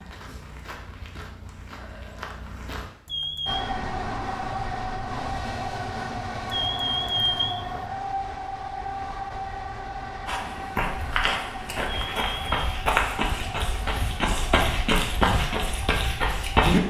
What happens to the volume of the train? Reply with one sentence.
The loudness of the train goes down.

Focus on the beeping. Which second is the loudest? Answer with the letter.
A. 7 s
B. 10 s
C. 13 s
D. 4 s
A.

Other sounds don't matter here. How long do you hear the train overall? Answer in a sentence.
You can hear the train for 13 seconds altogether.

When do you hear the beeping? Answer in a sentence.
The beeping can be heard from 3.0 to 3.6 s, from 6.5 to 7.8 s and from 11.8 to 12.5 s.